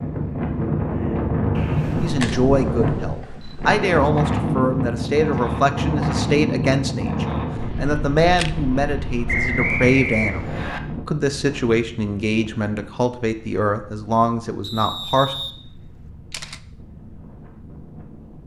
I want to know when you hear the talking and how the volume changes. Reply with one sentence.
You can hear the talking from 2.0 to 15.3 s, at a steady volume.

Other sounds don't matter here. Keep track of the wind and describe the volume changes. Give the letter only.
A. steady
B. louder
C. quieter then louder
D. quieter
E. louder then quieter
D.